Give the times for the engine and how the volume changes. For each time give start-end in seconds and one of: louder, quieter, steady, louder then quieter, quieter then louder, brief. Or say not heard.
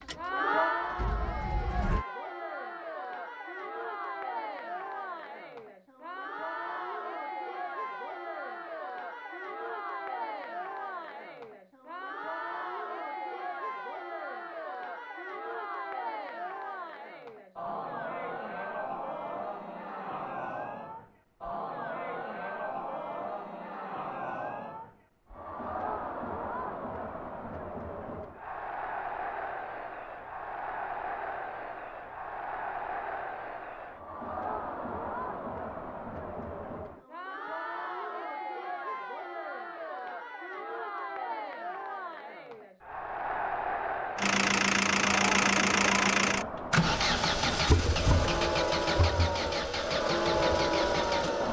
0.1-2.0 brief
44.1-51.4 quieter.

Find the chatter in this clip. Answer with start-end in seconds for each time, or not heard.
0.0-51.4.